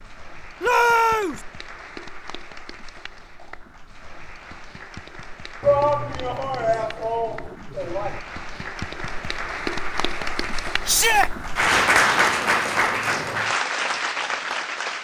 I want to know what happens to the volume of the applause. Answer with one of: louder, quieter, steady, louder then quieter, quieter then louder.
louder.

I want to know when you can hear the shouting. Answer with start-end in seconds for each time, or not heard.
0.6-1.4, 5.6-8.2, 10.8-11.3.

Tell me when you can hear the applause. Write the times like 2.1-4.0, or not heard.
0.0-14.9.